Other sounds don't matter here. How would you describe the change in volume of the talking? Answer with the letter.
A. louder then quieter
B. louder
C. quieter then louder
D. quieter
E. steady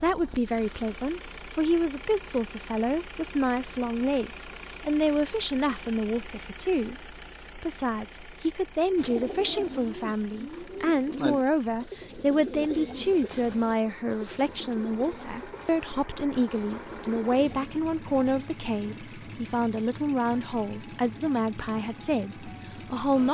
E.